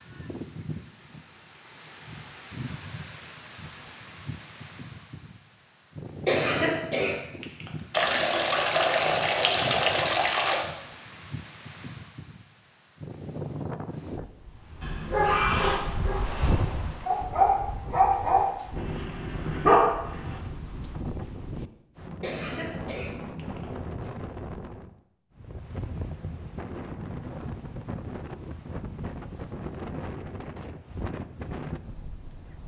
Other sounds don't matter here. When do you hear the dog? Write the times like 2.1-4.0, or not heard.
14.8-20.4.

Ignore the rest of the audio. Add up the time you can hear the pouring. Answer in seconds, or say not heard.
3 s.